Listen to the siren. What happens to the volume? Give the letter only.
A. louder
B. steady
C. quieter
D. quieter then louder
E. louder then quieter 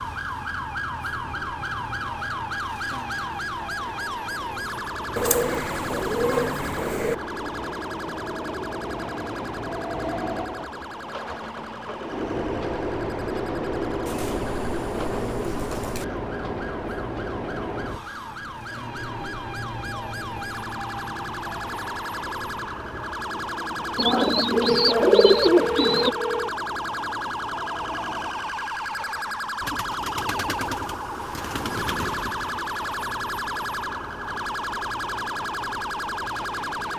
D.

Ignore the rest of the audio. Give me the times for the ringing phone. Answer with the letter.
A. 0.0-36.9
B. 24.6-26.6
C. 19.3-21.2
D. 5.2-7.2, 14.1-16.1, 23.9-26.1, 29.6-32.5
B.